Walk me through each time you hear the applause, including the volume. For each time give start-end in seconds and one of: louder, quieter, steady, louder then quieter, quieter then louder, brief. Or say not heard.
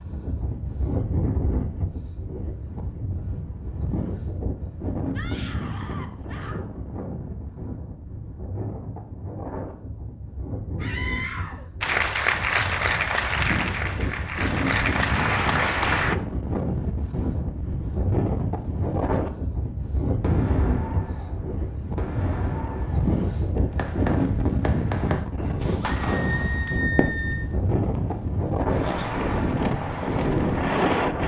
11.8-16.1 quieter then louder.